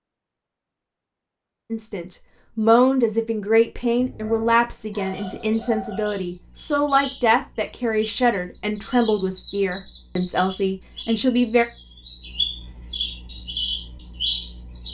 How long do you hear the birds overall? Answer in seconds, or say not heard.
11 s.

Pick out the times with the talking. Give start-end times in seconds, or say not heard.
1.7-11.7.